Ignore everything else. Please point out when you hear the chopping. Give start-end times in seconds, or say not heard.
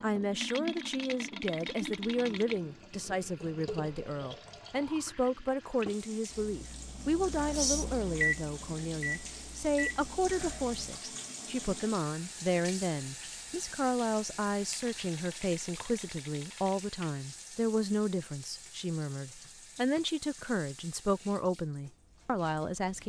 not heard.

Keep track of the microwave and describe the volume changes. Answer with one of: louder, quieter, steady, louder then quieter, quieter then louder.
louder then quieter.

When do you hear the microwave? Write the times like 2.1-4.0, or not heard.
6.3-11.0.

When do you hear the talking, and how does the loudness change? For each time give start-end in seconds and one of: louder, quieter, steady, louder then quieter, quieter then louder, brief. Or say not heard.
0.0-23.0 steady.